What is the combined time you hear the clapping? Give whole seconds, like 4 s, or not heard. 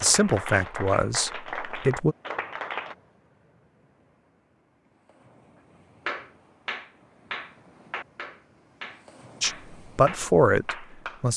8 s.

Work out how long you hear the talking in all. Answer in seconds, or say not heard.
4 s.